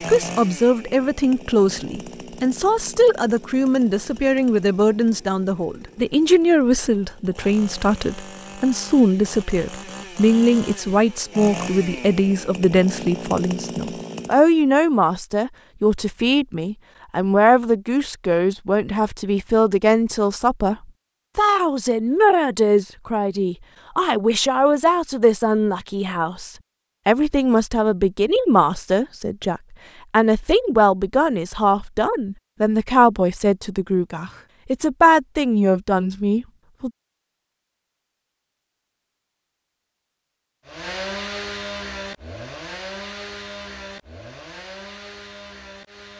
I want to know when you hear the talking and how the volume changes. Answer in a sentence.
You can hear the talking from 0.1 to 20.8 s, at a steady volume; and from 21.4 to 36.9 s, at a steady volume.